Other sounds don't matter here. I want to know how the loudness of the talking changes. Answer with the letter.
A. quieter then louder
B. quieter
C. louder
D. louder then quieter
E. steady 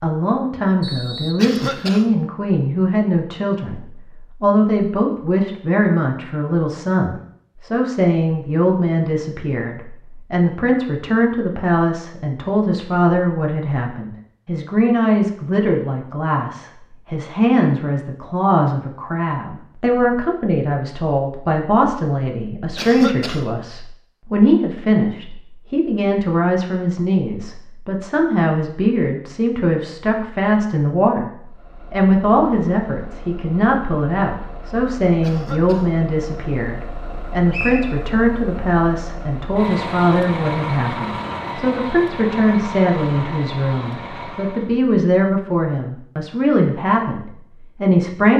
E.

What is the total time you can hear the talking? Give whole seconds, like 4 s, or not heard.
48 s.